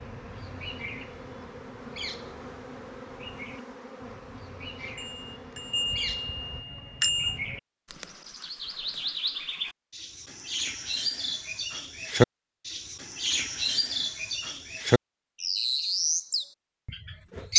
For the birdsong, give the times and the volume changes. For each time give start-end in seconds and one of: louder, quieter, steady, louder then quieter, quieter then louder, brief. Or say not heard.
0.0-17.5 louder.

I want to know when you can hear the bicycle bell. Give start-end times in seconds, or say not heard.
5.0-7.4.